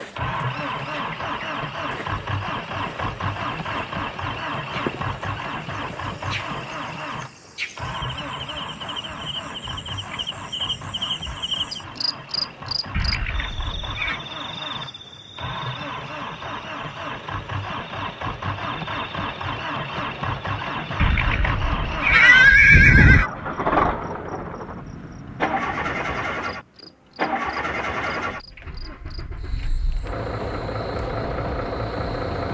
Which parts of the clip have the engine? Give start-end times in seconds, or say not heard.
0.1-32.5.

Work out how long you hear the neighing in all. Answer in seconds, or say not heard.
4 s.